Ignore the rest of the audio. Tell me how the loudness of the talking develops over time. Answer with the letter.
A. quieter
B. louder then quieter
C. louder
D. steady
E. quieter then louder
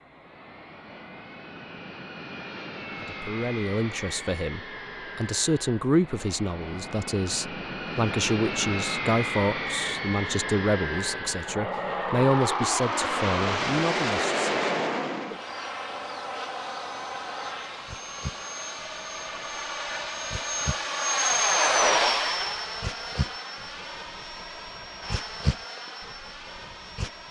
D.